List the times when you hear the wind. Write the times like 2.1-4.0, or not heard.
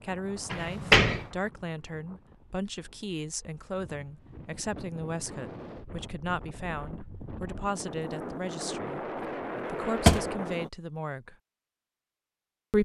0.0-10.7.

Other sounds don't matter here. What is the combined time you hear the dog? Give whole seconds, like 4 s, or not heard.
not heard.